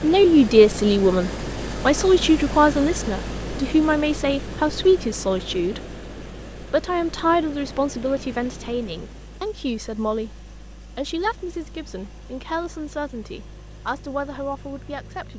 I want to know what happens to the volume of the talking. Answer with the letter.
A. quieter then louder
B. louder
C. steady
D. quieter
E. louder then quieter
D.